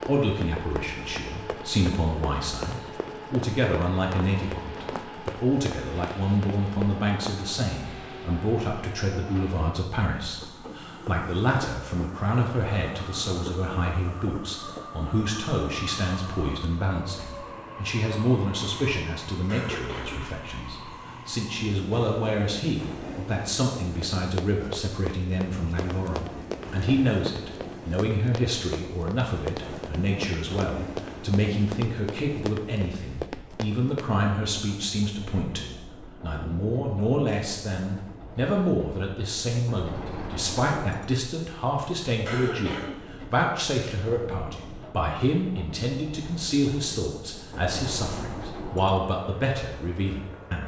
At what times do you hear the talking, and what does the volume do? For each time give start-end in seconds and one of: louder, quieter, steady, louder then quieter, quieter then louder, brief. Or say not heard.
0.1-50.6 steady.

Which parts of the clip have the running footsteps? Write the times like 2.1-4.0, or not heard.
0.0-7.7, 24.0-34.1.